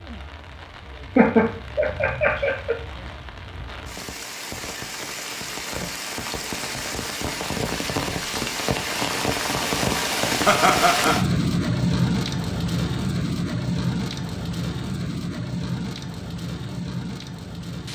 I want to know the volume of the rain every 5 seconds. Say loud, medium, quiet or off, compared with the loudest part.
quiet, loud, loud, medium.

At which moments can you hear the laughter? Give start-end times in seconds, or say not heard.
1.1-2.8, 10.4-11.2.